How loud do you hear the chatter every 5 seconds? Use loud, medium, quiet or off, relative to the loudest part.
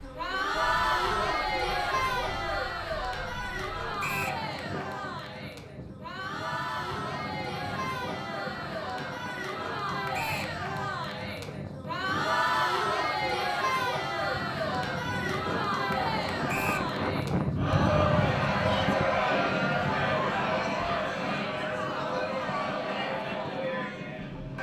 loud, medium, loud, loud, loud.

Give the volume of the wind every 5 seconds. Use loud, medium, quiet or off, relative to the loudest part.
quiet, medium, medium, loud, medium.